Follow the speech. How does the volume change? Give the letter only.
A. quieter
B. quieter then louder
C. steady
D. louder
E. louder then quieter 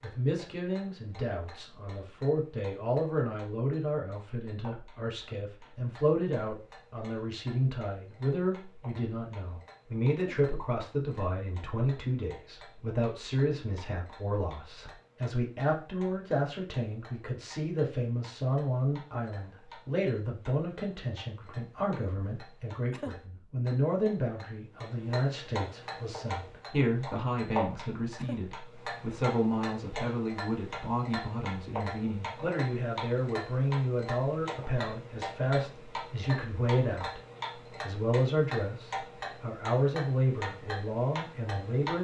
C.